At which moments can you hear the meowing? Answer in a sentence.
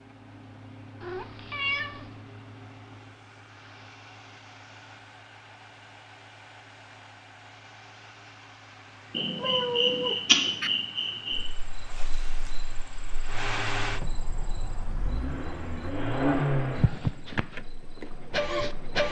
You can hear the meowing from 1.0 to 2.1 s, from 9.3 to 10.7 s and from 13.9 to 15.9 s.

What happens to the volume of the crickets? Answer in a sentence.
The loudness of the crickets goes down.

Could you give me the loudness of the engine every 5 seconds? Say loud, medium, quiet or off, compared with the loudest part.
quiet, quiet, medium, loud.